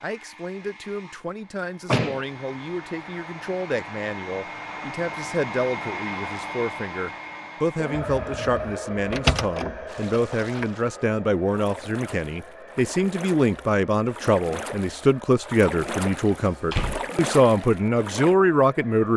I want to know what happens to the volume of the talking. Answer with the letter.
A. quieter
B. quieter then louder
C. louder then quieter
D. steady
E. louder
E.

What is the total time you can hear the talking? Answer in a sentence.
You can hear the talking for 19 seconds altogether.